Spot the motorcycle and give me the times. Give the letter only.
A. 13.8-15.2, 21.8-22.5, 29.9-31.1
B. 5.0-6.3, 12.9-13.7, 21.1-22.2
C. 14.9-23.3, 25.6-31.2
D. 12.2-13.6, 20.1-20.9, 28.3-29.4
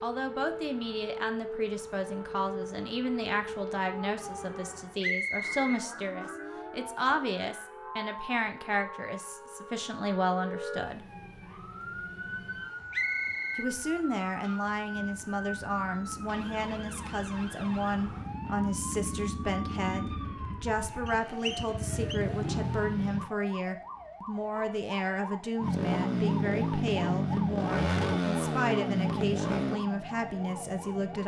C.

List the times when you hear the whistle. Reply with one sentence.
You can hear the whistle from 5.0 to 6.3 s, from 12.9 to 13.7 s and from 21.1 to 22.2 s.